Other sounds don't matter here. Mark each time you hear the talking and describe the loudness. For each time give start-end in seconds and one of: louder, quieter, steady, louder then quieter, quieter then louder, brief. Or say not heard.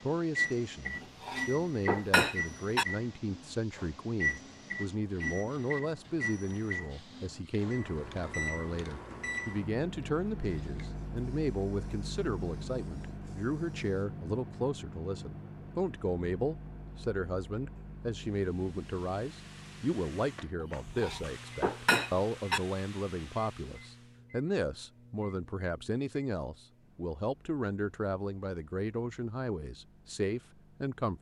0.0-31.1 steady.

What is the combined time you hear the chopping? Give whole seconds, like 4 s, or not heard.
not heard.